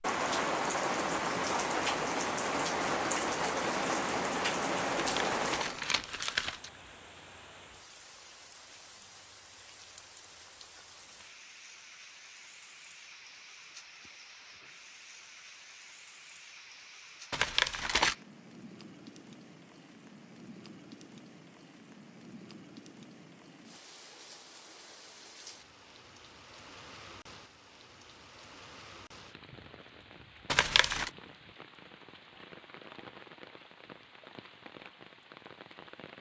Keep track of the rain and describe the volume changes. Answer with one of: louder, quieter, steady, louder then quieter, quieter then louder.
quieter.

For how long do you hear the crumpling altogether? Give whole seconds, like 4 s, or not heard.
3 s.